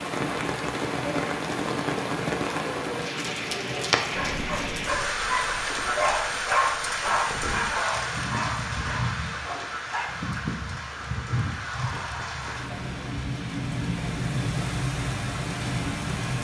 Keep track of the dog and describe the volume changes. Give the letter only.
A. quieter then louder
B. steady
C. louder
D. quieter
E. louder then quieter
E.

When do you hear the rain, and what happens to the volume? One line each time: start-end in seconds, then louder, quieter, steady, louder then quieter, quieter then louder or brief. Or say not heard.
0.0-16.3 quieter then louder.